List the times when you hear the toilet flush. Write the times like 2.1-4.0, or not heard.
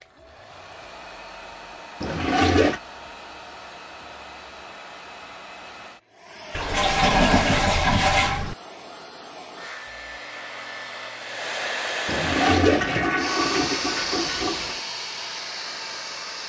2.0-2.8, 6.5-8.6, 12.1-14.8.